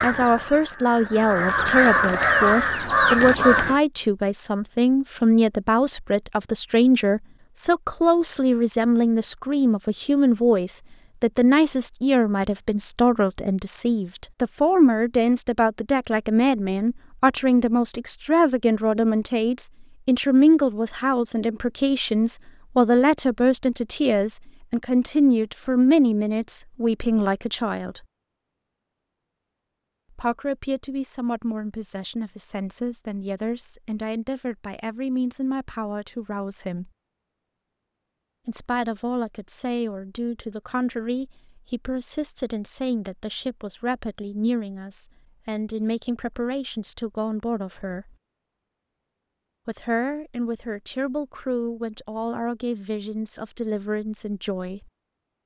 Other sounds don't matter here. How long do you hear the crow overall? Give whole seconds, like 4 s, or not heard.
4 s.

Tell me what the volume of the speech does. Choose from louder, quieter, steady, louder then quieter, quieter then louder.
quieter.